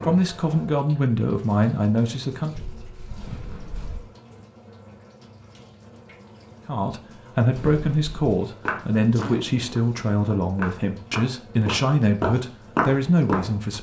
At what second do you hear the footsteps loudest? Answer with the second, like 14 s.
13 s.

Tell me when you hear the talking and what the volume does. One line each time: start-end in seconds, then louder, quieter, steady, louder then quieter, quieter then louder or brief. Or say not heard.
0.0-2.5 brief
6.7-13.7 steady.